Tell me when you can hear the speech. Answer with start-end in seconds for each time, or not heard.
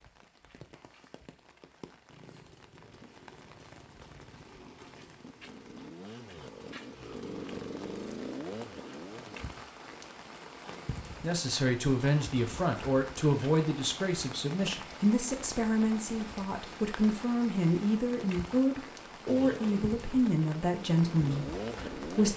11.2-22.3.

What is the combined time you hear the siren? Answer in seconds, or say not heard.
not heard.